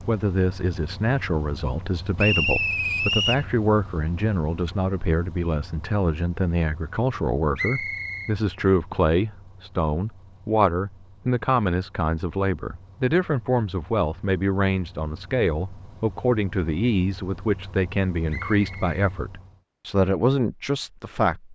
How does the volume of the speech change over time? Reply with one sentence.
The volume of the speech stays about the same.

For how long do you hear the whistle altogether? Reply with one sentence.
You can hear the whistle for 3 seconds altogether.